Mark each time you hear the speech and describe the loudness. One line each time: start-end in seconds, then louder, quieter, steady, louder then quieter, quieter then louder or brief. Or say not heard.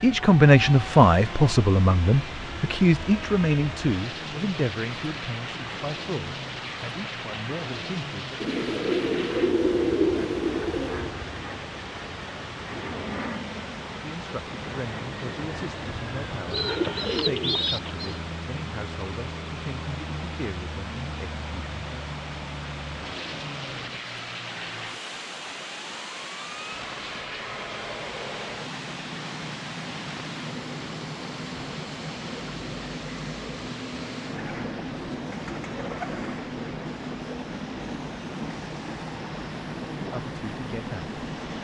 0.0-8.2 quieter
14.0-22.1 steady
40.0-41.1 brief.